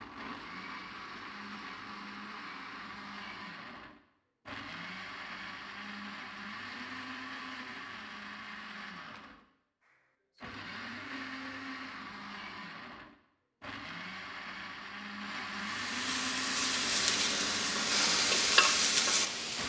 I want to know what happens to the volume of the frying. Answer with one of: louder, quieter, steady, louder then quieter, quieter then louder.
louder.